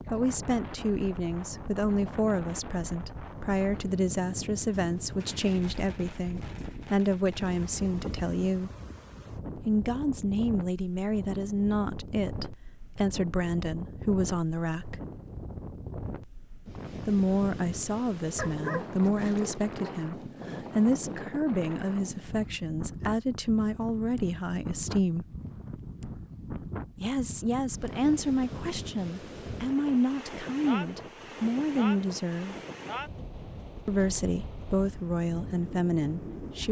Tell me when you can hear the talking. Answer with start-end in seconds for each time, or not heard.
0.1-8.7, 9.6-15.0, 16.9-25.2, 26.9-32.5, 33.9-36.6.